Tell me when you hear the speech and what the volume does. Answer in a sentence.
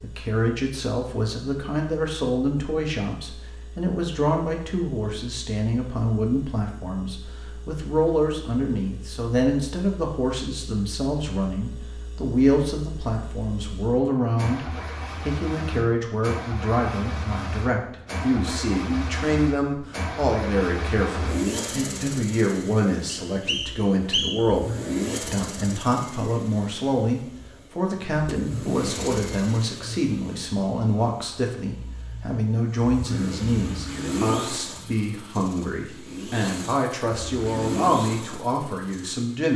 You can hear the speech from 0.0 to 39.5 s, at a steady volume.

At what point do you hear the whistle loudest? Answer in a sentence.
The volume of the whistle peaks at 24 seconds.